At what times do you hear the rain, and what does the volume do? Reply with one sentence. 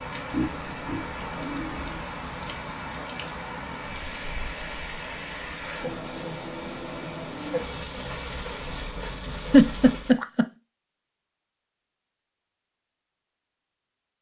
The rain can be heard from 0.0 to 10.2 s, at a steady volume.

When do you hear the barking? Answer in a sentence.
You can't hear the barking here.